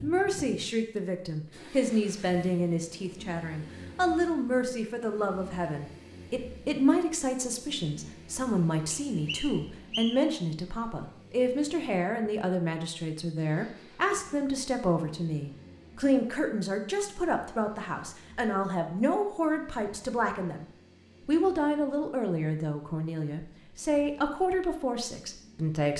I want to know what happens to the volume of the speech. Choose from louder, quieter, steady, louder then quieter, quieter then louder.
steady.